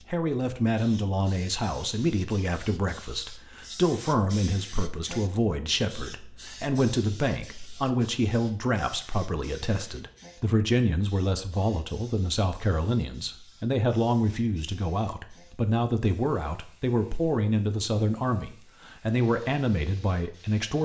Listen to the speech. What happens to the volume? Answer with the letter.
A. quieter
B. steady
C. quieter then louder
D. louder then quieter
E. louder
B.